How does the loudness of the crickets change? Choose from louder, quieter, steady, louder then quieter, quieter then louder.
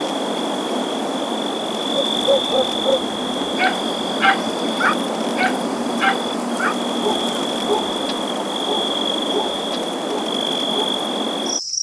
steady.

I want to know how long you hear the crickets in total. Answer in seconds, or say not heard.
12 s.